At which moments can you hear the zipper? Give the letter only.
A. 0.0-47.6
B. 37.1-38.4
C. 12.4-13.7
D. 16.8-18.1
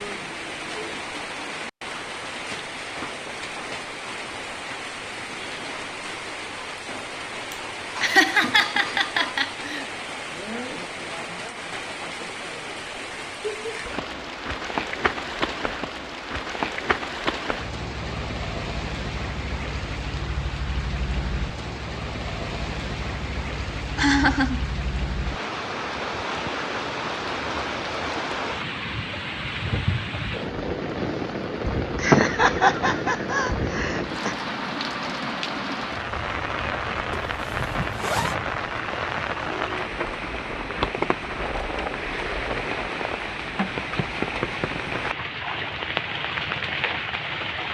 B.